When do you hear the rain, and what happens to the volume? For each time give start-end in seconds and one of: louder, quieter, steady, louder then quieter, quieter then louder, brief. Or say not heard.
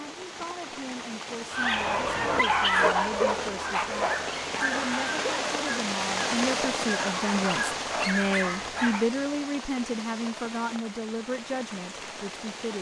0.0-12.7 louder then quieter.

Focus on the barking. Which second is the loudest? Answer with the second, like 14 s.
3 s.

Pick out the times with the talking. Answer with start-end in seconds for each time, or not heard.
0.0-12.7.